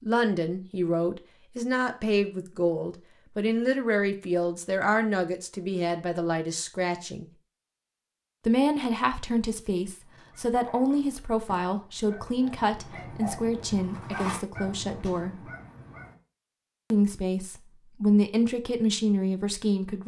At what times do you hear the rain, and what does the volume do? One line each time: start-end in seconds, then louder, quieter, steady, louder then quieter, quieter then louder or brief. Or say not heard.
not heard.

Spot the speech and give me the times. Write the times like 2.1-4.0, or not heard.
0.0-7.2, 8.4-15.3, 16.9-20.0.